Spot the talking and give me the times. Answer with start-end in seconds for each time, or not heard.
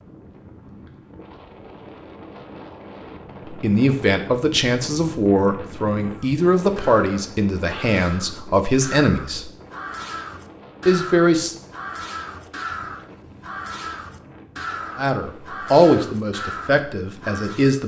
3.5-9.5, 10.8-11.6, 14.9-17.8.